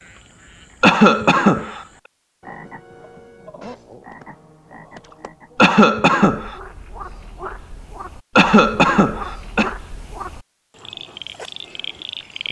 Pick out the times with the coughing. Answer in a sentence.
The coughing can be heard from 0.8 to 1.8 s, from 5.5 to 6.5 s and from 8.3 to 9.7 s.